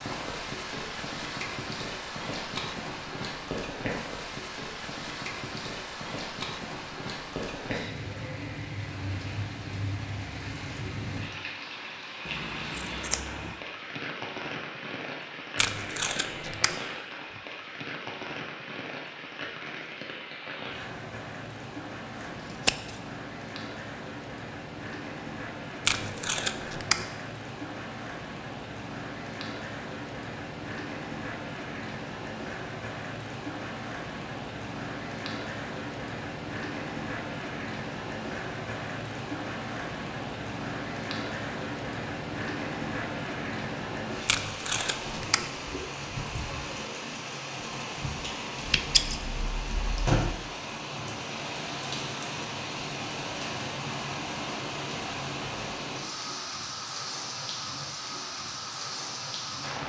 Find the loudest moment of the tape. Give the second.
26 s.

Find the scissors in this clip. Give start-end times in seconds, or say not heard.
12.2-13.6, 22.1-23.0, 48.7-50.1.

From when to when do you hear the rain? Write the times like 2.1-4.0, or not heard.
0.0-59.8.